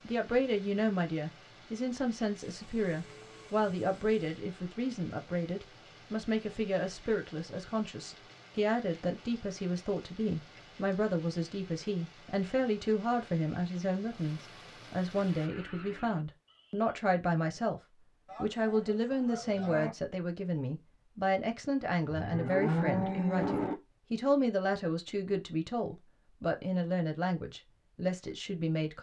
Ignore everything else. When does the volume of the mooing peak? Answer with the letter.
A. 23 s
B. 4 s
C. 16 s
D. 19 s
A.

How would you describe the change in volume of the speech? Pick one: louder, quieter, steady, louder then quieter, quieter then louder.
steady.